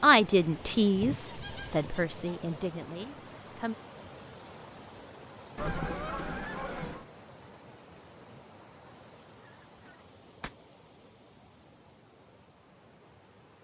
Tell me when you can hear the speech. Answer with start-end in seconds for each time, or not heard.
0.0-3.8.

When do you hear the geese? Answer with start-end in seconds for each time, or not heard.
0.9-2.7, 5.5-7.0, 9.4-10.6.